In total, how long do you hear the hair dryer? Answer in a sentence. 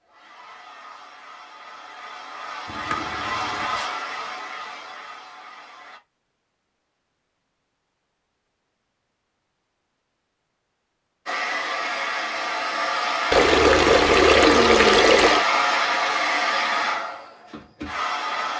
You can hear the hair dryer for 13 seconds altogether.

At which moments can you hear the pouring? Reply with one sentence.
The pouring can be heard from 2.6 to 3.9 s and from 13.3 to 15.4 s.